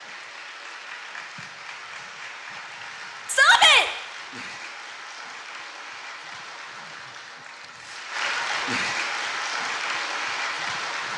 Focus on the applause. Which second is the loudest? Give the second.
9 s.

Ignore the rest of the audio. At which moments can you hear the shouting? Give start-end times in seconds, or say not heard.
3.2-3.9, 8.3-8.8.